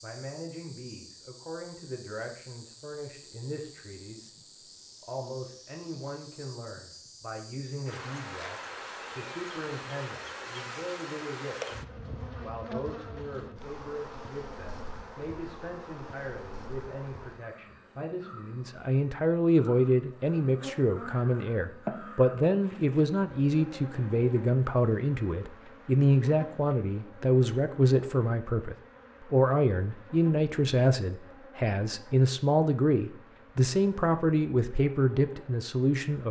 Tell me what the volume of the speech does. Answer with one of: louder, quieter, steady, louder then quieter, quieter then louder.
louder.